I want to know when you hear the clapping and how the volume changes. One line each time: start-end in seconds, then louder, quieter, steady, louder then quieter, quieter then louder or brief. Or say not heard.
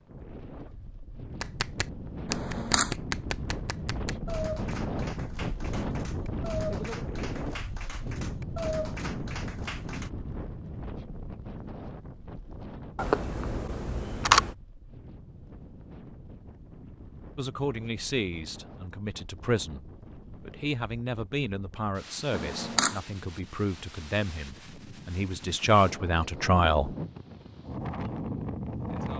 1.4-10.1 quieter then louder.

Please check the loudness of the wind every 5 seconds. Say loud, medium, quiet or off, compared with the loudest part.
loud, loud, medium, quiet, quiet, loud.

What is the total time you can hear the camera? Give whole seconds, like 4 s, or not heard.
3 s.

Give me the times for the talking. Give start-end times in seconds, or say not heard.
17.4-26.9.